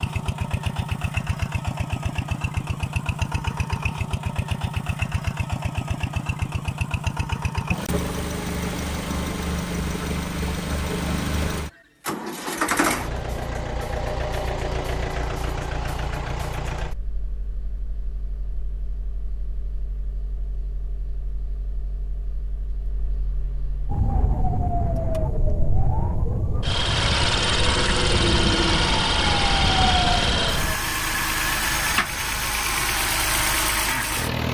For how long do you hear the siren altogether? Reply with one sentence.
The siren can be heard for 7 seconds in total.